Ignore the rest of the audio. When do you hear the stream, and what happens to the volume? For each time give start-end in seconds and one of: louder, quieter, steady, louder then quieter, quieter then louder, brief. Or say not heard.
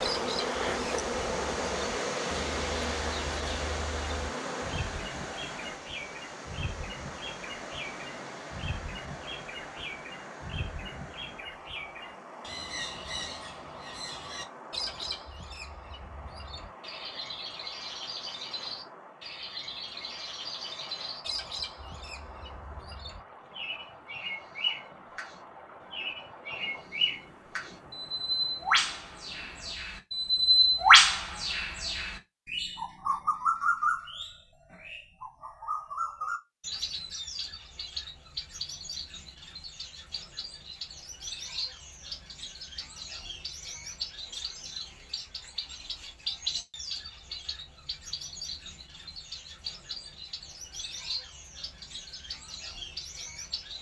0.0-29.8 quieter.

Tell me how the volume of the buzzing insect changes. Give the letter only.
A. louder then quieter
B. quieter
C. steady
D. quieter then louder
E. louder
B.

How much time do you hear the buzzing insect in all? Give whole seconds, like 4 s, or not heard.
5 s.